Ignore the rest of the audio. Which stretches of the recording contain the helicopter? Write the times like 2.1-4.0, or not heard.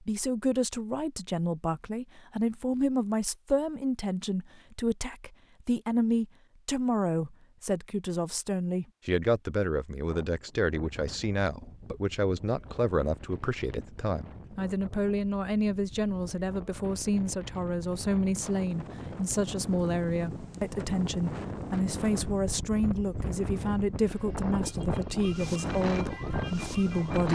not heard.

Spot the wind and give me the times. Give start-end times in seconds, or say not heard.
10.1-27.3.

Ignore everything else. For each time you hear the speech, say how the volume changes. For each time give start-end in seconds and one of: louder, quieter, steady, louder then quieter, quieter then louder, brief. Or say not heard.
0.0-27.3 steady.